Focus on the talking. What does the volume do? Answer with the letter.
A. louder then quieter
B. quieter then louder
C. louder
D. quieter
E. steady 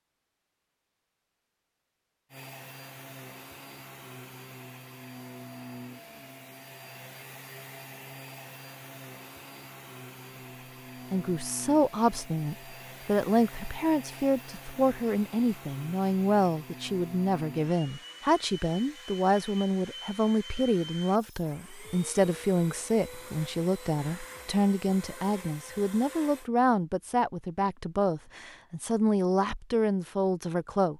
E.